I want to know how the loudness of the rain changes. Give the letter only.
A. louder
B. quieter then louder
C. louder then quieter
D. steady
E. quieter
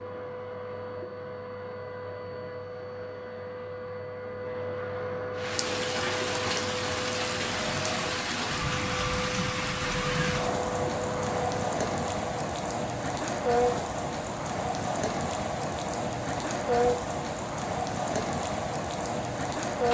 D.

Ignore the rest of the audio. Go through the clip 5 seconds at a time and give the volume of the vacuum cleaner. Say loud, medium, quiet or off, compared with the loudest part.
loud, loud, loud, off.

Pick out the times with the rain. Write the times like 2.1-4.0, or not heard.
5.3-19.9.